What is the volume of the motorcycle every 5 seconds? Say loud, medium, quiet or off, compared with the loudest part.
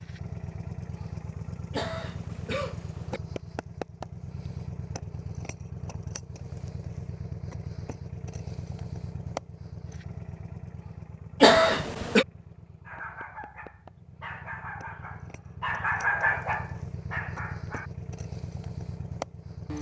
loud, loud, medium, loud.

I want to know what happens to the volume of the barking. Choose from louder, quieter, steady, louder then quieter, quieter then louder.
louder then quieter.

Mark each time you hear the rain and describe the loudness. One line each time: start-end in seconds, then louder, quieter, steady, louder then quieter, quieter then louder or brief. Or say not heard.
not heard.